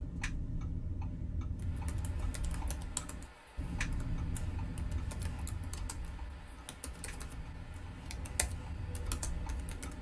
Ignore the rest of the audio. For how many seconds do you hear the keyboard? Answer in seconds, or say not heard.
8 s.